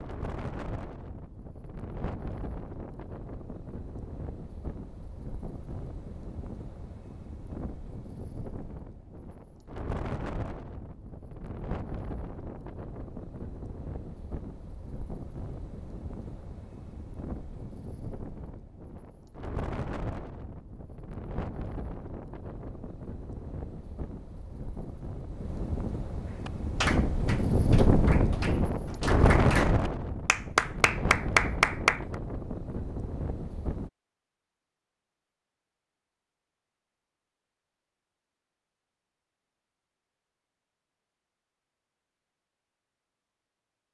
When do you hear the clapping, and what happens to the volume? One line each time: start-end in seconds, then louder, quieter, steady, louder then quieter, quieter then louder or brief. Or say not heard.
26.3-32.1 quieter then louder.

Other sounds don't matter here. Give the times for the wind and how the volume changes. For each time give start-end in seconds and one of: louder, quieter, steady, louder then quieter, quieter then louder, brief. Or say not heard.
0.0-33.9 louder.